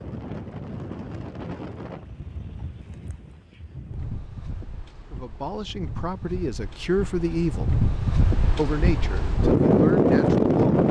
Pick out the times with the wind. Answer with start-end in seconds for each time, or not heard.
0.0-10.8.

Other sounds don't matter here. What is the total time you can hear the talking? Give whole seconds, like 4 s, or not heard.
5 s.